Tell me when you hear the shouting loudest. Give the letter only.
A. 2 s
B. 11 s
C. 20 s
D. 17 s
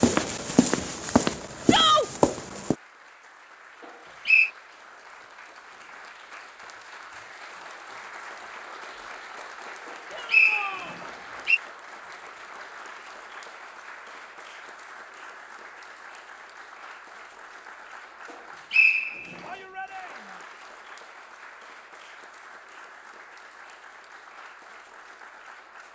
A.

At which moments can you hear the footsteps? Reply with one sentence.
You can hear the footsteps from 0.0 to 2.8 s.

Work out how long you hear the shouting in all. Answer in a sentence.
The shouting can be heard for 2 seconds in total.